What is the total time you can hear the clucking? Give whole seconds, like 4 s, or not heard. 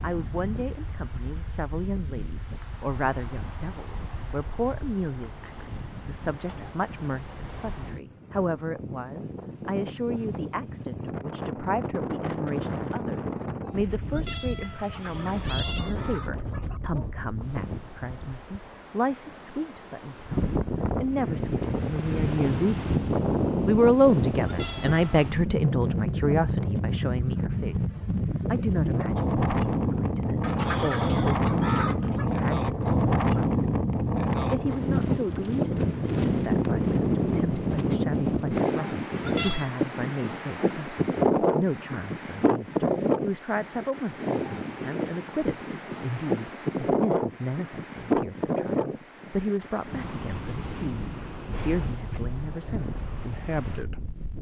4 s.